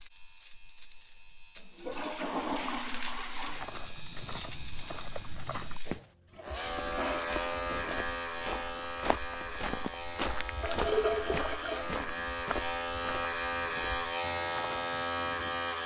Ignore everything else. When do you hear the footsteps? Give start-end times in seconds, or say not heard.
3.4-15.1.